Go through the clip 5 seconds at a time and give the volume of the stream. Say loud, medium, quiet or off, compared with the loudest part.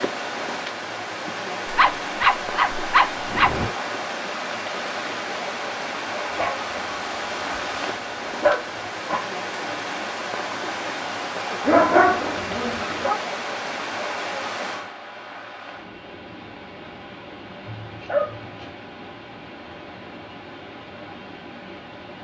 loud, loud, loud, medium, medium.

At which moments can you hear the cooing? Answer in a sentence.
The cooing can't be heard in this clip.